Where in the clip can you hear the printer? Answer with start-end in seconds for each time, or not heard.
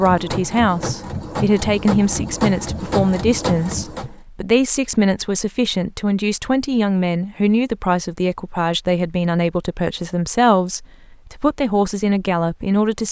0.0-4.2.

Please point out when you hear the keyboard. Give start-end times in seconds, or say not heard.
not heard.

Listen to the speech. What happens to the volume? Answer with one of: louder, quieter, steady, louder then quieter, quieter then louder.
steady.